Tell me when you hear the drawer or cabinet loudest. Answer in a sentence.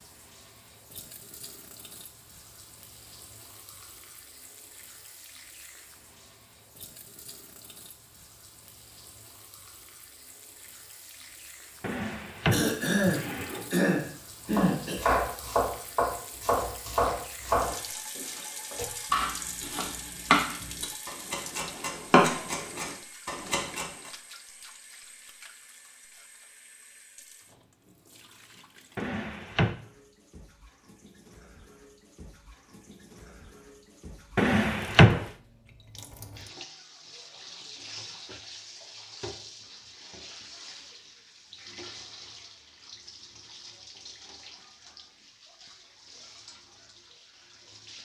The loudest moment of the drawer or cabinet is at 35 seconds.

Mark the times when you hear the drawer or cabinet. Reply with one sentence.
The drawer or cabinet can be heard from 11.8 to 13.7 s, from 28.9 to 29.8 s and from 34.4 to 35.2 s.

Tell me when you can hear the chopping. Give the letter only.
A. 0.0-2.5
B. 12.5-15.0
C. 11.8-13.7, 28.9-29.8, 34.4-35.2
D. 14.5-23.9
D.